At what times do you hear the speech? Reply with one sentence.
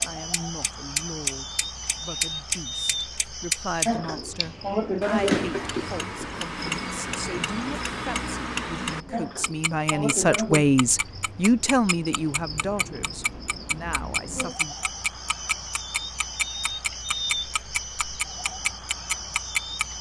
You can hear the speech from 0.0 to 14.8 s.